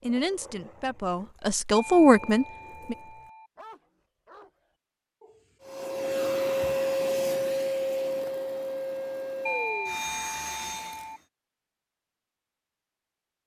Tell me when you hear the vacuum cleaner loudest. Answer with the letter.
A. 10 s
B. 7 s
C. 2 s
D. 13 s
B.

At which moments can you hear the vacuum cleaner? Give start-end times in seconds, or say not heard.
5.6-11.2.